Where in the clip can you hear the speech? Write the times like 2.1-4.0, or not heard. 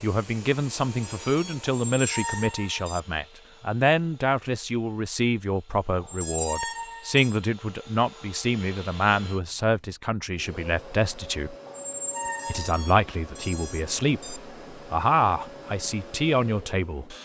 0.0-11.6, 12.4-17.1.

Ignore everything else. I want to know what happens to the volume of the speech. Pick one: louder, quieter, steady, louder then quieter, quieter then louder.
steady.